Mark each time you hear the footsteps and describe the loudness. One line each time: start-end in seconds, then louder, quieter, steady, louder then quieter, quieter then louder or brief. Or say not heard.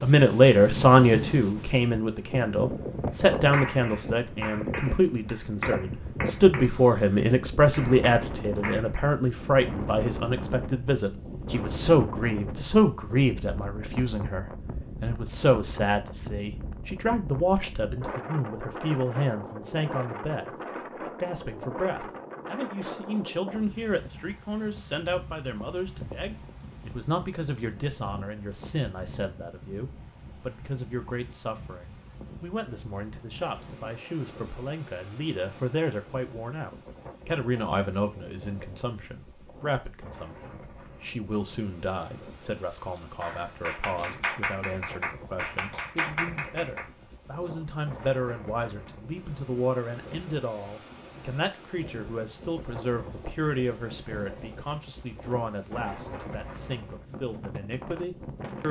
not heard.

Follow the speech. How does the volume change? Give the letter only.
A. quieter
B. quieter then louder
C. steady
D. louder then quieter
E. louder
A.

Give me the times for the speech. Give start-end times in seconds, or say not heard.
0.0-20.5, 21.2-58.6.